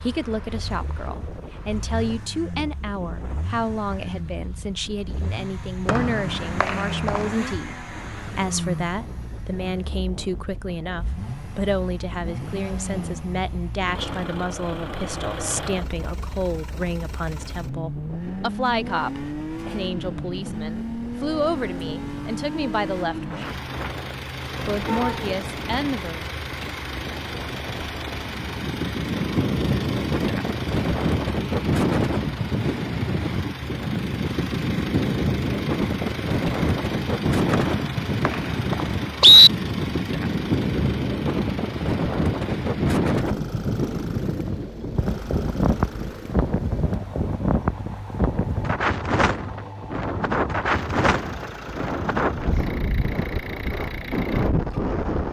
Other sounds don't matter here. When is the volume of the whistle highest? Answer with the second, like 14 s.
39 s.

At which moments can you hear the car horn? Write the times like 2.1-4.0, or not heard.
24.6-25.9.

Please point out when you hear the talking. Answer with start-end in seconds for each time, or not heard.
0.0-7.8, 8.3-23.6, 24.6-26.3.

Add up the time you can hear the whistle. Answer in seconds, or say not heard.
3 s.